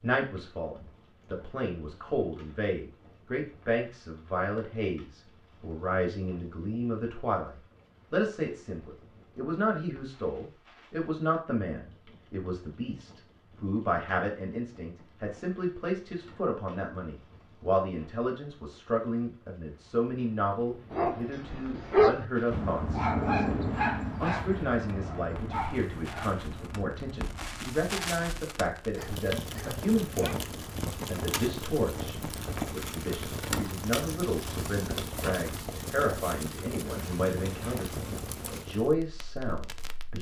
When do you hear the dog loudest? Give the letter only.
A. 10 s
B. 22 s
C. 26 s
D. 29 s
B.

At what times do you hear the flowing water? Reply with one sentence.
The flowing water can't be heard in this clip.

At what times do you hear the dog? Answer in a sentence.
The dog can be heard from 20.9 to 30.4 s.